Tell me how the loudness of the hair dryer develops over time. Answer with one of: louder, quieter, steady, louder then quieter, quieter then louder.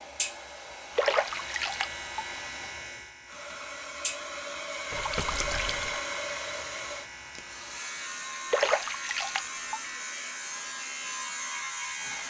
louder then quieter.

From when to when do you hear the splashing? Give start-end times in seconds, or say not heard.
0.9-2.3, 4.9-6.0, 8.5-9.8.